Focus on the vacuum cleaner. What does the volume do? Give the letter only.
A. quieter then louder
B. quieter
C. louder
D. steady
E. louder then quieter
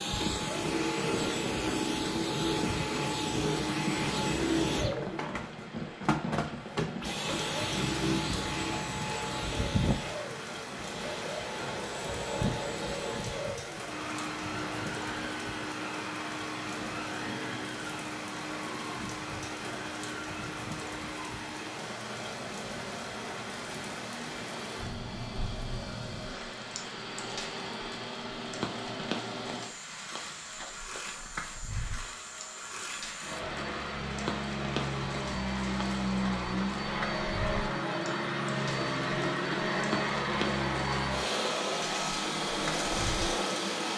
A.